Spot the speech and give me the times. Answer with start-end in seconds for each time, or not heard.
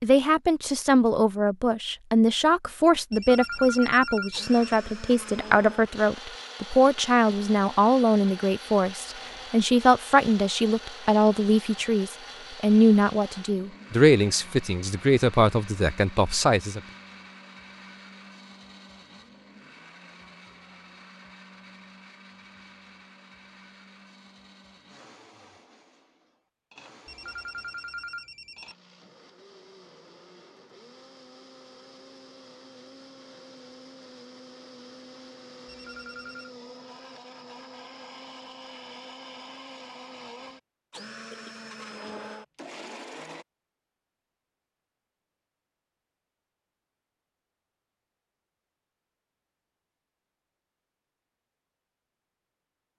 0.0-16.8.